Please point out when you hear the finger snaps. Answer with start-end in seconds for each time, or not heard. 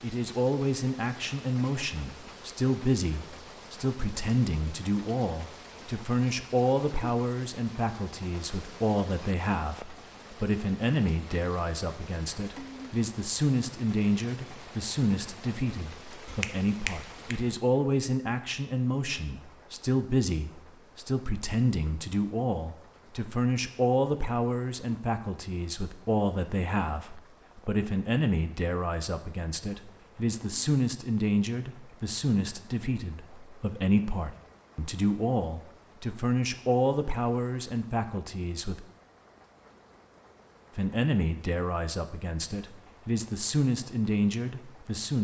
16.2-17.5.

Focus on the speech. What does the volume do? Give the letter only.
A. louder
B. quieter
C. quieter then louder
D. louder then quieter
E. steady
E.